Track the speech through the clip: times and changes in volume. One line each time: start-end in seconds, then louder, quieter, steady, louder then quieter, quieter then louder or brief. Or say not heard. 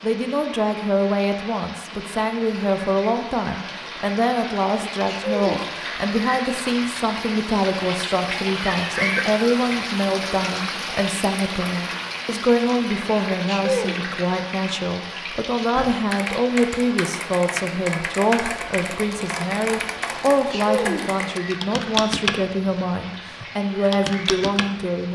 0.0-25.0 steady.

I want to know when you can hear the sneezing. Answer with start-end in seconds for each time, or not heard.
5.0-5.7, 13.4-13.9, 20.3-21.1.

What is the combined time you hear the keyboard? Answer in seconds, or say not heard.
9 s.